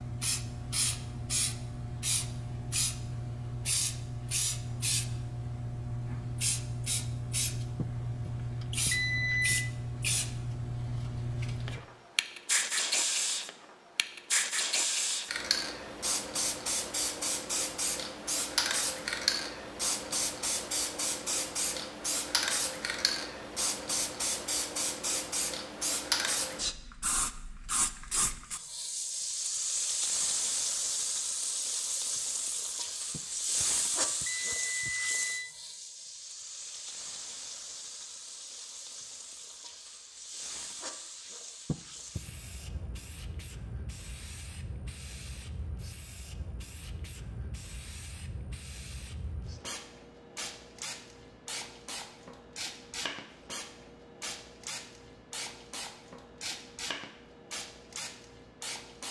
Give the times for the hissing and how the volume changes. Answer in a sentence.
You can hear the hissing from 0.0 to 59.0 s, getting quieter.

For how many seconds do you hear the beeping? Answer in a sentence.
You can hear the beeping for 5 seconds altogether.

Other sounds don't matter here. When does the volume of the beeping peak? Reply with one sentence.
The loudest moment of the beeping is at 9 seconds.